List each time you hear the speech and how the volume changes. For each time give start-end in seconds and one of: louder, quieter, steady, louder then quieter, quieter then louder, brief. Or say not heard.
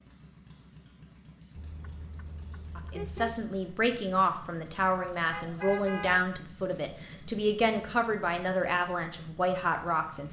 2.8-10.2 steady.